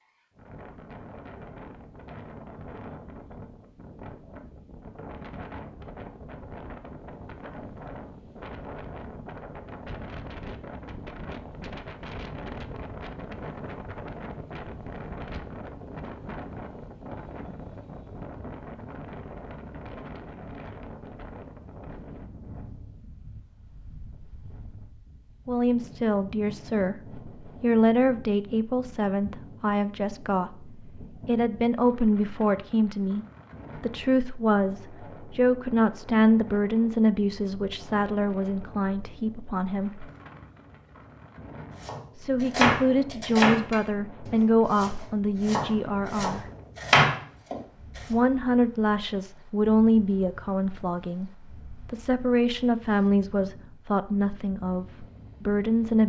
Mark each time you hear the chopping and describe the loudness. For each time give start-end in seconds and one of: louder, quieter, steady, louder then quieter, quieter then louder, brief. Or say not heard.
41.8-48.1 quieter then louder.